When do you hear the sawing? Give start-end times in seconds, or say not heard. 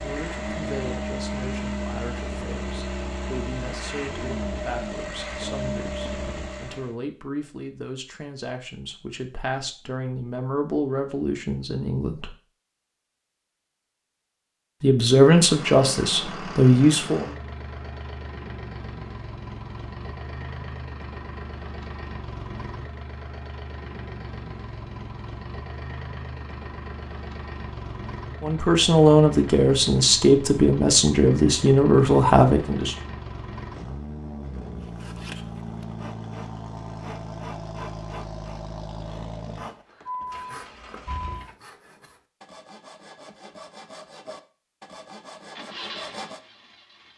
34.8-46.4.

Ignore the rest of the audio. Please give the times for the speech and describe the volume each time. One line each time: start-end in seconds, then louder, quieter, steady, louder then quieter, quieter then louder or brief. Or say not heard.
0.0-12.3 louder
14.8-17.3 brief
28.4-33.0 steady.